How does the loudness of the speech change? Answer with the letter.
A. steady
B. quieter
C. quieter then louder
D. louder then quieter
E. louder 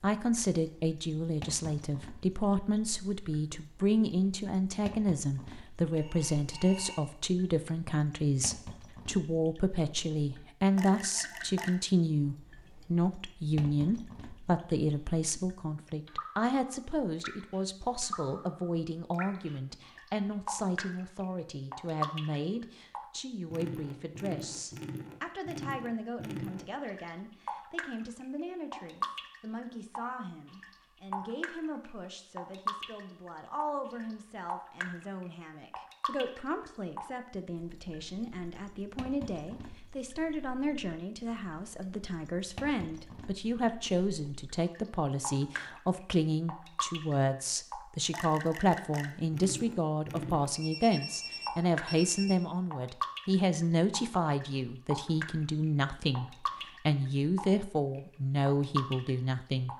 C.